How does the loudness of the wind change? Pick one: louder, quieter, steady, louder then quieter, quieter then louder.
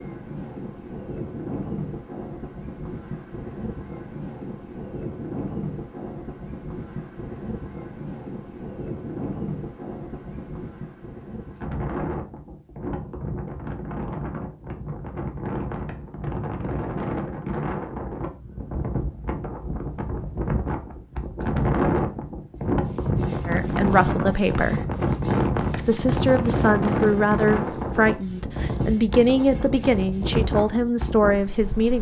louder.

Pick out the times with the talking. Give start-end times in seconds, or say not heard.
23.4-24.8, 25.8-31.9.